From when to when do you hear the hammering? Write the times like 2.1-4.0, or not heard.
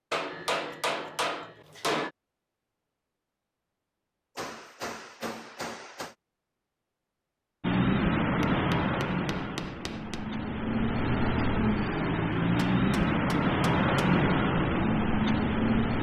0.1-2.1, 4.3-6.2, 8.4-10.2, 12.3-14.3.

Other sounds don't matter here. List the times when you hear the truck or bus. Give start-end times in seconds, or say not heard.
7.6-15.9.